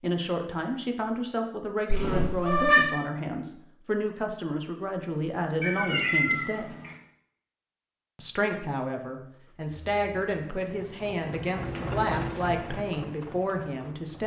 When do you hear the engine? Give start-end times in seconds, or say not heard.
9.3-14.2.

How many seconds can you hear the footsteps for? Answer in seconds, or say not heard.
not heard.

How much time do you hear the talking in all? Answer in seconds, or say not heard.
13 s.